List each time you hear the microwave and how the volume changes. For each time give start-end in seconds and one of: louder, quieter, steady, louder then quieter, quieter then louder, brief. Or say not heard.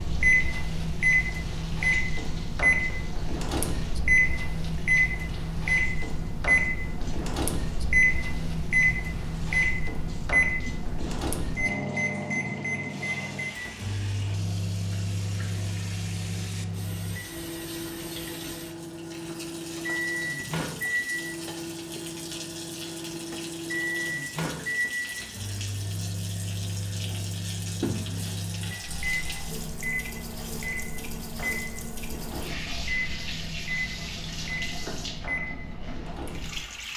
0.0-36.6 quieter.